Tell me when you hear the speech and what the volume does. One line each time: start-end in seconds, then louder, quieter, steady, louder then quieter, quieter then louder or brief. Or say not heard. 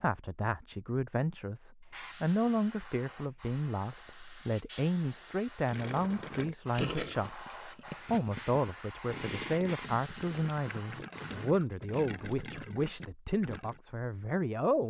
0.0-14.8 steady.